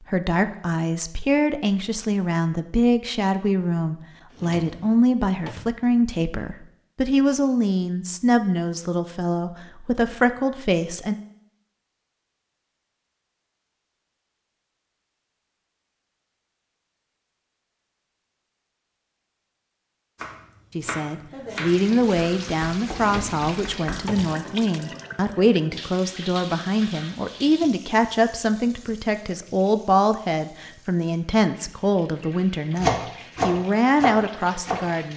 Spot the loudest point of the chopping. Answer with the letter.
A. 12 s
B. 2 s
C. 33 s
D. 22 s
C.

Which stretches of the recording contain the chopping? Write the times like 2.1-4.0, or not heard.
20.1-24.1, 32.8-34.9.